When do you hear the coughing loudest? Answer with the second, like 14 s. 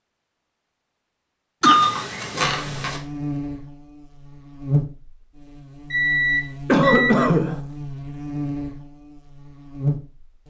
7 s.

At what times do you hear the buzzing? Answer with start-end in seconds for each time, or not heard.
2.4-10.4.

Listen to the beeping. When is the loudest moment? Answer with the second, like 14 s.
2 s.